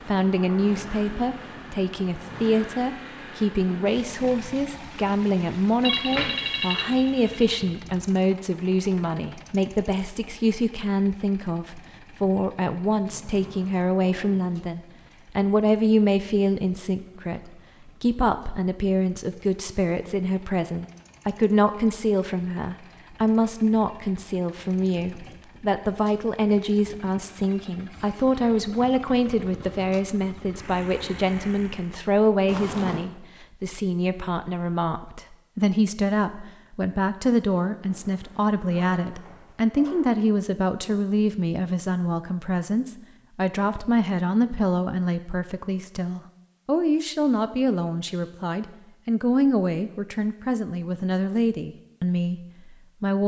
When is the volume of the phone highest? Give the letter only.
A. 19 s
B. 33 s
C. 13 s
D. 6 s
D.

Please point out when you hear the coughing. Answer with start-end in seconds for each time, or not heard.
not heard.